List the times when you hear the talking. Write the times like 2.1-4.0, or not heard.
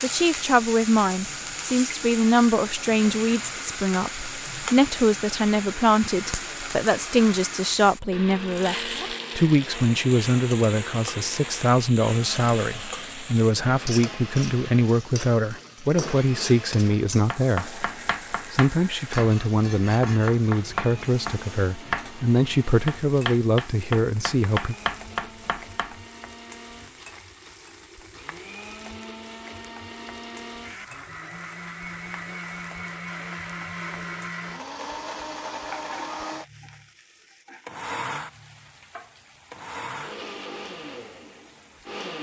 0.0-24.8.